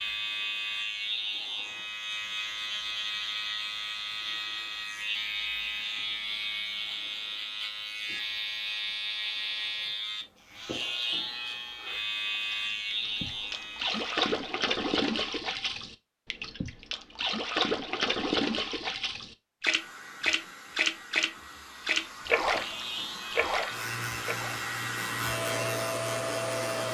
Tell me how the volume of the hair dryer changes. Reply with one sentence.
The loudness of the hair dryer goes up.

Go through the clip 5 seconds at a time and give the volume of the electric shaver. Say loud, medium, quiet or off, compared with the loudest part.
loud, loud, loud, off, medium, loud.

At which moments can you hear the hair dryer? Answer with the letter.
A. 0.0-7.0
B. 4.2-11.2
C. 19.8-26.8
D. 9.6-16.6
C.